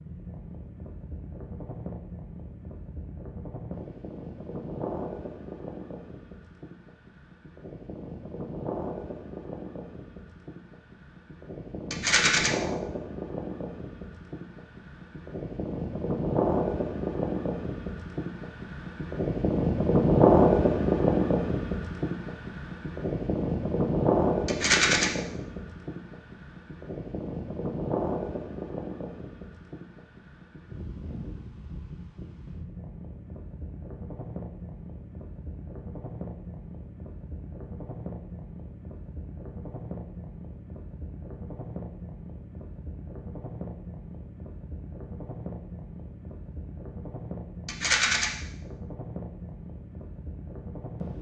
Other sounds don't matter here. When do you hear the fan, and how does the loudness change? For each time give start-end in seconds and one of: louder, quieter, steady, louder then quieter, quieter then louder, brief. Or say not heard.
0.0-51.1 louder then quieter.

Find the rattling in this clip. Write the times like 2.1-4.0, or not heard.
11.9-12.5, 24.4-25.1, 47.6-48.2.